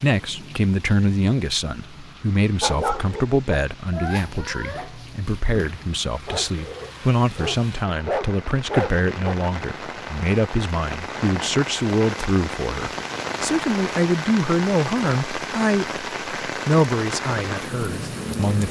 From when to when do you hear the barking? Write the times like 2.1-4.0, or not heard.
2.6-9.3.